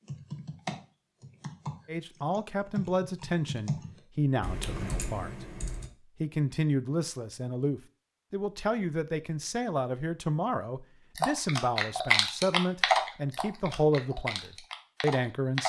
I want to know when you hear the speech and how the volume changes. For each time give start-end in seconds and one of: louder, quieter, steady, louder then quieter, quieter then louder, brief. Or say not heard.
1.9-15.6 steady.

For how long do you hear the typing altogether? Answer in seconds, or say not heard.
10 s.